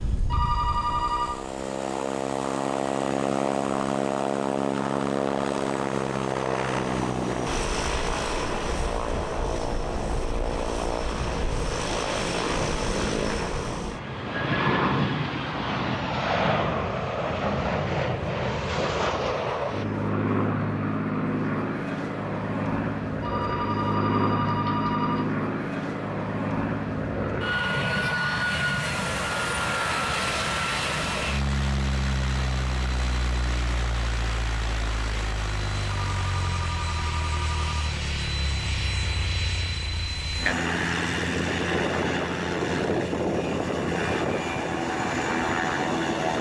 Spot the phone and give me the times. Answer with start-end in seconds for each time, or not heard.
0.2-1.4, 23.2-25.2, 36.0-37.9.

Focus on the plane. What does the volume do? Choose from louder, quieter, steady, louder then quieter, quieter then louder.
steady.